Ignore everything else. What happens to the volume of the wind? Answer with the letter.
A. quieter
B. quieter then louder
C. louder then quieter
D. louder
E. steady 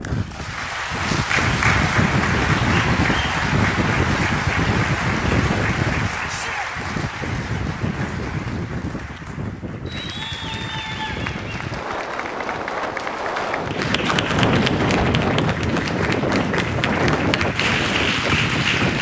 B.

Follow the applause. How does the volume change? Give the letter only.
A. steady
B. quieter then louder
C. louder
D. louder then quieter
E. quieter
B.